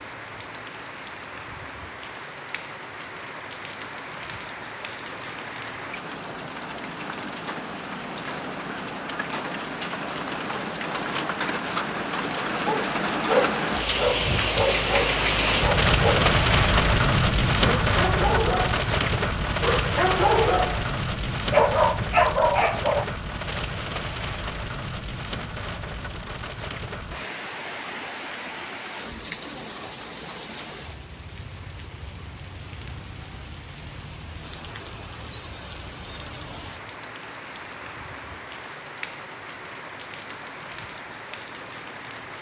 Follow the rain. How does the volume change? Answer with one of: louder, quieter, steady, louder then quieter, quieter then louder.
louder then quieter.